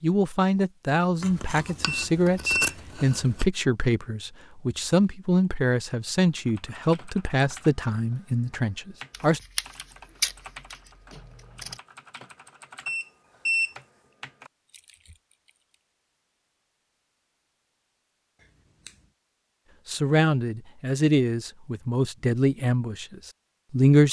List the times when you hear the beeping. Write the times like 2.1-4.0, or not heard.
1.9-2.8, 12.8-13.8.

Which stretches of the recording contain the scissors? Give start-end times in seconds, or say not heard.
1.2-3.5, 9.1-11.8, 18.4-19.1.